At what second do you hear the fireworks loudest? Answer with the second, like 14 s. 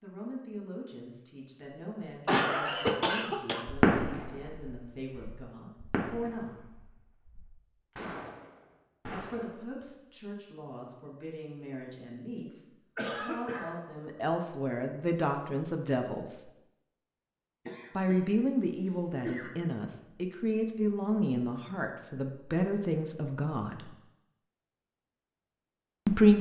4 s.